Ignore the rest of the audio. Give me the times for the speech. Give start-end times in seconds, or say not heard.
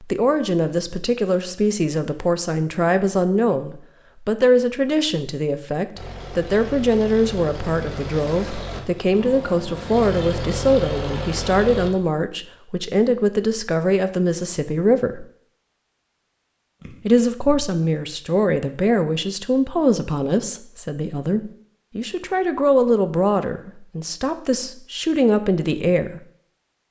0.0-15.2, 17.1-26.2.